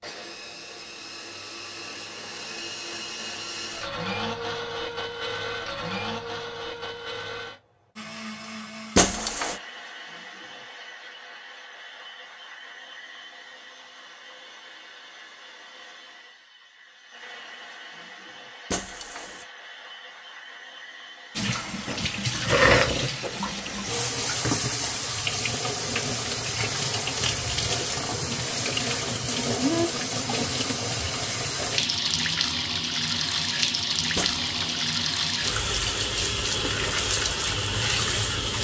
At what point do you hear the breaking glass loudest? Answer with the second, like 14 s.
9 s.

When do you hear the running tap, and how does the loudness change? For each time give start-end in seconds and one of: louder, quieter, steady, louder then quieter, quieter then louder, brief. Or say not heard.
21.4-38.5 steady.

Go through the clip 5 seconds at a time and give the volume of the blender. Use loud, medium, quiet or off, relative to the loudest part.
loud, loud, medium, medium, medium, off, off, off.